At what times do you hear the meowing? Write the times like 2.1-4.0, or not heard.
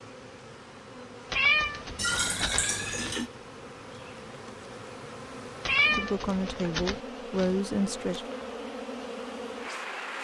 1.3-3.2, 5.7-7.6.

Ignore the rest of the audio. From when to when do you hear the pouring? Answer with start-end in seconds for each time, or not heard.
1.9-3.3.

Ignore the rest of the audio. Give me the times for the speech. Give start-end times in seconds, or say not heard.
5.9-8.2.